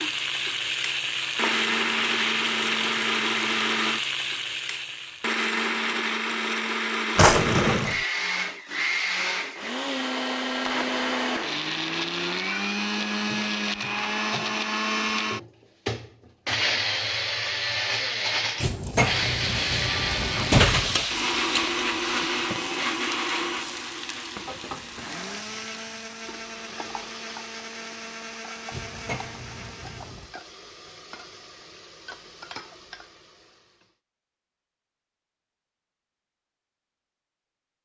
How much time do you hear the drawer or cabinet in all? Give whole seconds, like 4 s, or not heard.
5 s.